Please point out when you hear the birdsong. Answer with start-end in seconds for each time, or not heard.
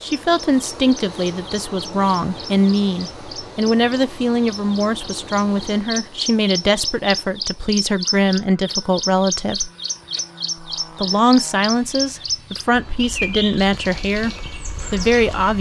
0.0-15.5.